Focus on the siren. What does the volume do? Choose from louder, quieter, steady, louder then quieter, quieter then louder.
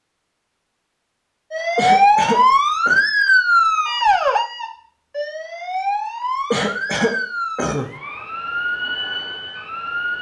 quieter.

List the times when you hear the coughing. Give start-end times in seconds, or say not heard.
1.8-3.0, 6.5-7.9.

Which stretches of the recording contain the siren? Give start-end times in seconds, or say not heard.
1.5-10.1.